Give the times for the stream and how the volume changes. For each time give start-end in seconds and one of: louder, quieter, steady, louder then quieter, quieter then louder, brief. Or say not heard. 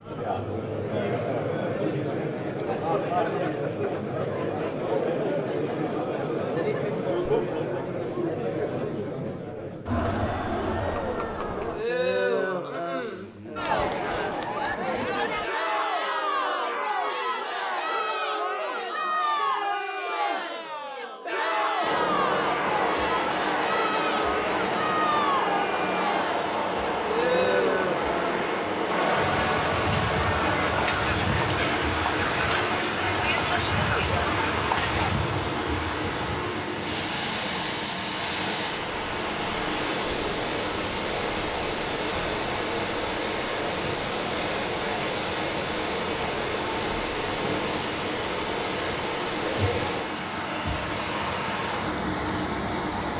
21.8-53.1 steady.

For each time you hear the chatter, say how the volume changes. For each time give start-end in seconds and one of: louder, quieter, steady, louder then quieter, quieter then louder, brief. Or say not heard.
0.0-35.1 steady.